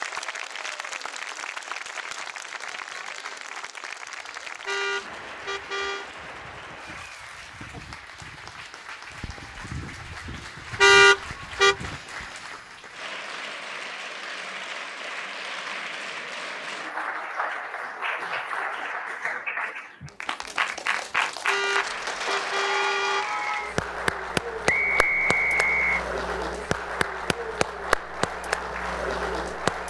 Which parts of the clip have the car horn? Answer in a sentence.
The car horn can be heard from 4.7 to 6.0 s, from 10.8 to 11.8 s and from 21.4 to 23.2 s.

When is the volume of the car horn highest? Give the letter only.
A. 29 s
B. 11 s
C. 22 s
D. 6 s
B.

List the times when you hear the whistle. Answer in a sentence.
You can hear the whistle from 24.6 to 26.0 s.